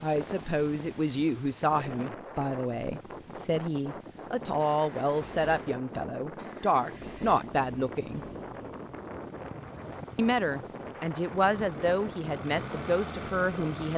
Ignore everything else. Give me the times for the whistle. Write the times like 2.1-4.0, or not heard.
not heard.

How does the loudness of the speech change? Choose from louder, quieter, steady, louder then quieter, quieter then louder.
steady.